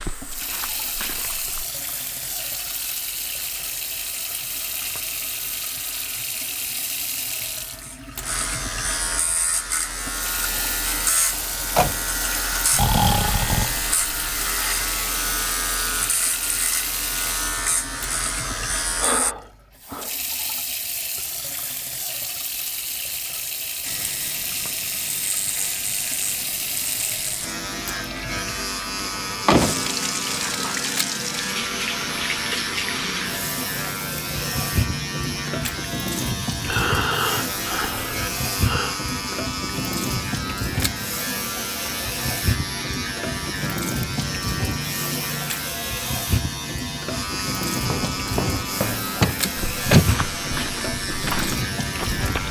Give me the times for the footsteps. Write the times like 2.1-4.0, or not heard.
0.0-1.6, 47.9-52.4.